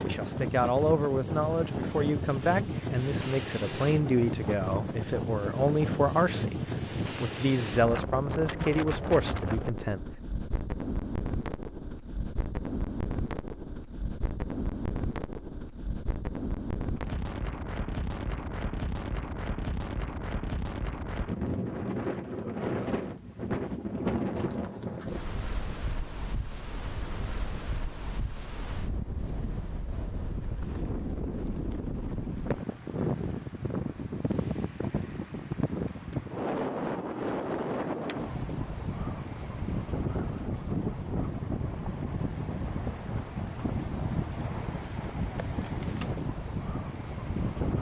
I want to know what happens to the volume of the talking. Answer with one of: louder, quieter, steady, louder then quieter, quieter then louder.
steady.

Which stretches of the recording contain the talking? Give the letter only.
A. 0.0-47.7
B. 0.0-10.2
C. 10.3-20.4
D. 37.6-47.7
B.